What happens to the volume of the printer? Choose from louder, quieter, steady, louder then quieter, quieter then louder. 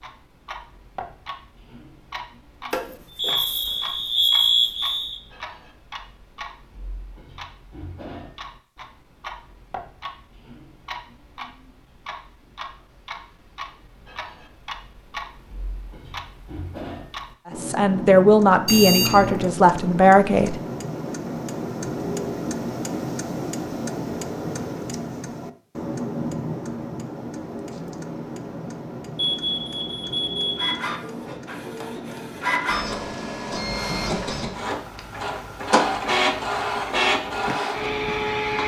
louder.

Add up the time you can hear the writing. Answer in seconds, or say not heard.
not heard.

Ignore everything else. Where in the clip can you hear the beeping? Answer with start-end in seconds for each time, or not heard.
2.7-5.2, 18.6-19.5, 29.1-30.8.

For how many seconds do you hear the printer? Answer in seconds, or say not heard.
8 s.